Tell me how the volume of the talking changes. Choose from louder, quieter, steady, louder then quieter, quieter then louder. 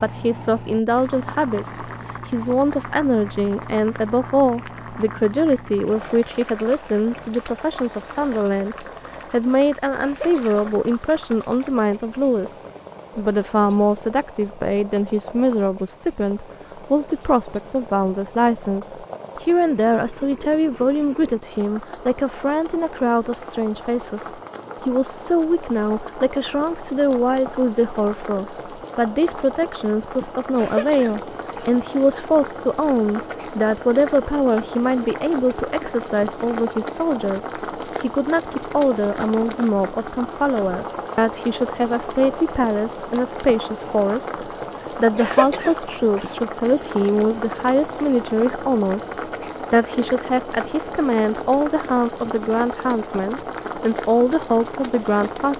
steady.